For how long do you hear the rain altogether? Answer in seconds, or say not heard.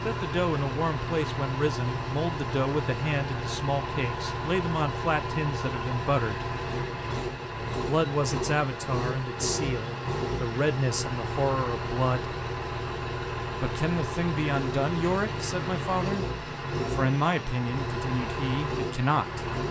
not heard.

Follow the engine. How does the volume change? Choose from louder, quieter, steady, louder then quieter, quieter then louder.
steady.